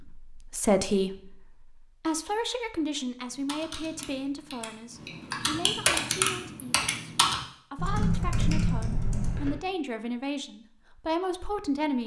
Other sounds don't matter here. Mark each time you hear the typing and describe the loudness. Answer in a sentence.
The typing can be heard from 3.3 to 9.5 s, getting louder.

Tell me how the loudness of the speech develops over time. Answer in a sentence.
The loudness of the speech goes down, then up.